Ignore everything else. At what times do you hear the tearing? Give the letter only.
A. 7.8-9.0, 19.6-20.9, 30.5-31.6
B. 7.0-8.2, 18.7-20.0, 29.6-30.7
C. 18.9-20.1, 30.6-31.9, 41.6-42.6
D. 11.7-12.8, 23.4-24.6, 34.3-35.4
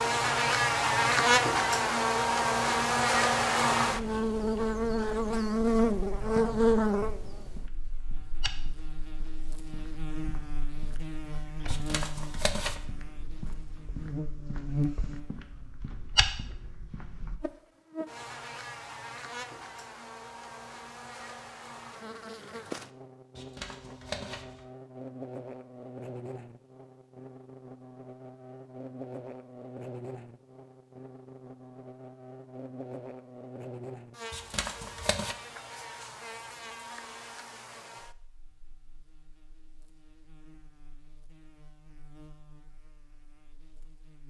D.